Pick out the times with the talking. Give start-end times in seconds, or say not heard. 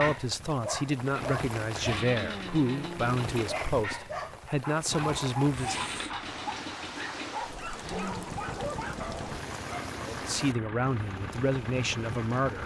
0.0-5.8, 10.1-12.6.